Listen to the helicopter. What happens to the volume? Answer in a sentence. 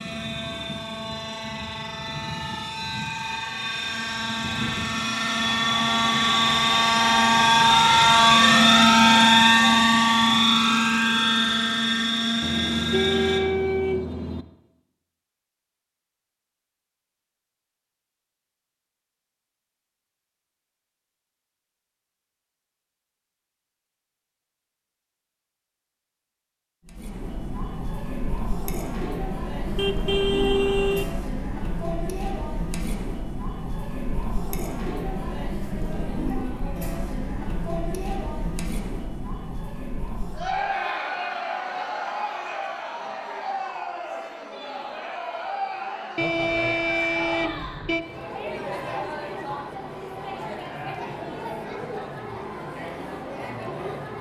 The loudness of the helicopter goes up, then down.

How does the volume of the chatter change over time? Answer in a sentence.
The loudness of the chatter stays about the same.